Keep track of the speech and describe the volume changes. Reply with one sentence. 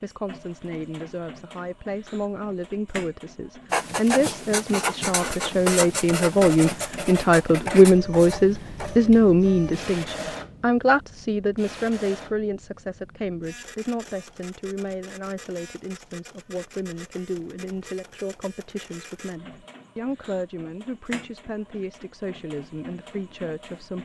The loudness of the speech goes up, then down.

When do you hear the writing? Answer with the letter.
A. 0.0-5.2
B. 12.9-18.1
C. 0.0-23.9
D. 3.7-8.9
D.